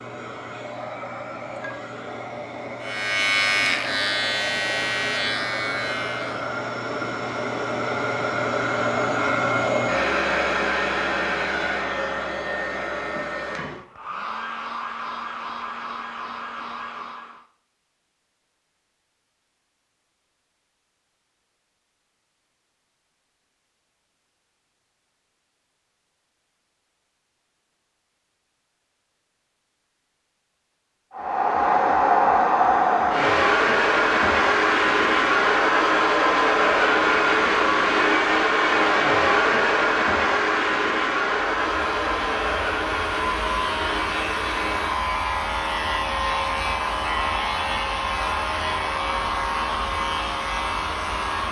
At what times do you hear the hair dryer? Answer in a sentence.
You can hear the hair dryer from 0.0 to 17.4 s and from 31.1 to 51.4 s.